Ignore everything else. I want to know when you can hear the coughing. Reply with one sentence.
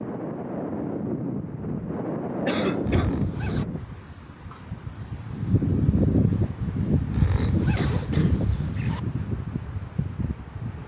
You can hear the coughing from 2.5 to 3.1 s and from 7.3 to 8.3 s.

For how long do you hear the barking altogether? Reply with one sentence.
The barking can't be heard in this clip.